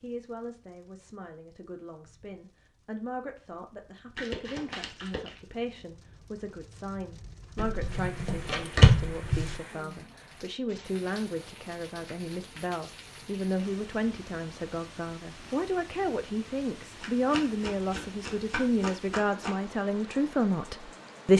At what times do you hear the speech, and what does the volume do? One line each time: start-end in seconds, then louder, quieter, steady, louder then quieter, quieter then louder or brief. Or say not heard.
0.0-21.3 louder.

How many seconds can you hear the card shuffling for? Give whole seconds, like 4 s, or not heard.
6 s.